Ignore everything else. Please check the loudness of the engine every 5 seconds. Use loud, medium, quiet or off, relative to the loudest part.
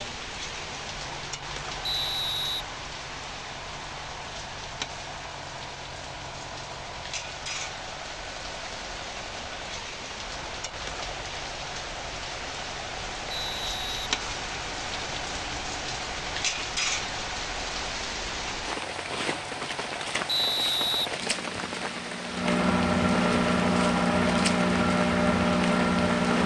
quiet, quiet, quiet, quiet, loud, loud.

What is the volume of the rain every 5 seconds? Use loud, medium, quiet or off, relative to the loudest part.
medium, medium, loud, loud, loud, loud.